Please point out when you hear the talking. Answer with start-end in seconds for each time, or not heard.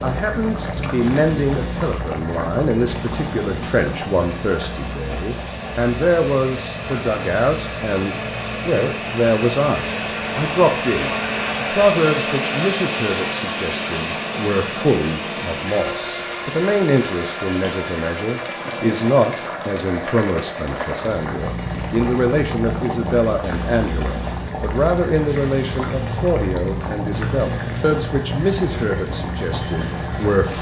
0.0-30.5.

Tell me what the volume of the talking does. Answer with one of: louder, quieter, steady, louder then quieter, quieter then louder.
steady.